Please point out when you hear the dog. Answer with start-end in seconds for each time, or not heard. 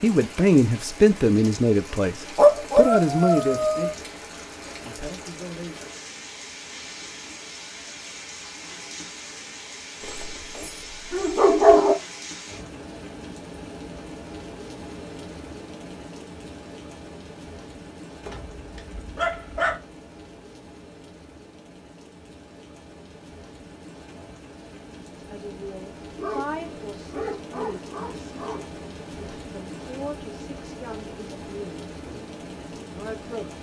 2.4-4.0, 10.0-11.9, 18.2-19.8, 26.1-28.8.